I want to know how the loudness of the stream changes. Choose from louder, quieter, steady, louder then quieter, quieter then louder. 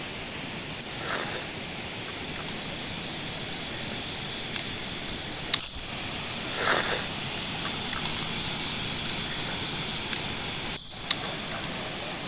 steady.